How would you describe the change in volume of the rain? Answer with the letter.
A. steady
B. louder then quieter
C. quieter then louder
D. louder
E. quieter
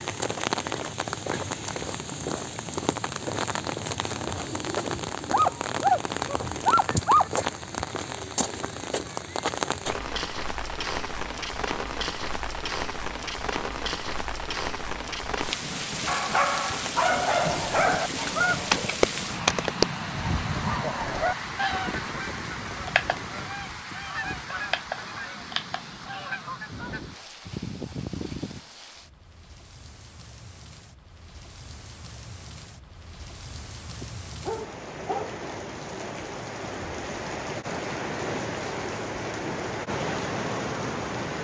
C.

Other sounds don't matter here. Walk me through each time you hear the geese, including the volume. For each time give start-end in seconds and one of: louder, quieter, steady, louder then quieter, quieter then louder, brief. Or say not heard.
17.4-28.6 quieter.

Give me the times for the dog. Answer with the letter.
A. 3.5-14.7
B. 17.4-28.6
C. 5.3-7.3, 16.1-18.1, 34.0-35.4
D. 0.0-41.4
C.